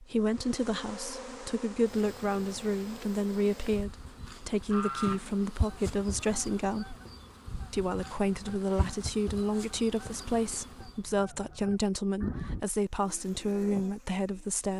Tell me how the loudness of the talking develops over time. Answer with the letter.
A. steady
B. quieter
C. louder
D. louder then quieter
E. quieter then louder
A.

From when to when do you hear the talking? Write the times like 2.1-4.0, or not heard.
0.0-7.0, 7.7-14.7.